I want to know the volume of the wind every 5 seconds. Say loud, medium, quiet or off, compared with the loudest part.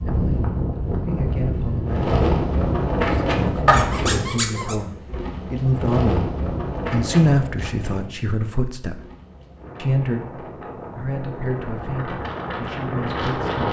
loud, medium, medium.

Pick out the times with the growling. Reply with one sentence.
You can hear the growling from 3.6 to 4.8 s.